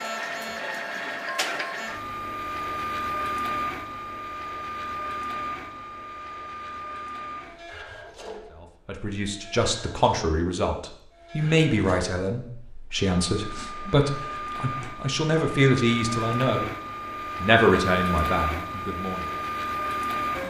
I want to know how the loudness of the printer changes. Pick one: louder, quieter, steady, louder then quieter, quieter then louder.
quieter then louder.